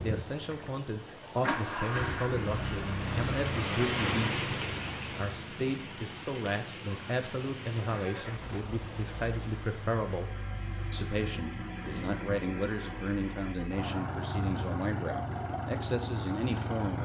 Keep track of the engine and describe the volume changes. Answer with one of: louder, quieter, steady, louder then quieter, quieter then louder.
quieter then louder.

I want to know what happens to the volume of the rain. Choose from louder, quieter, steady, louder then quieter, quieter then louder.
louder then quieter.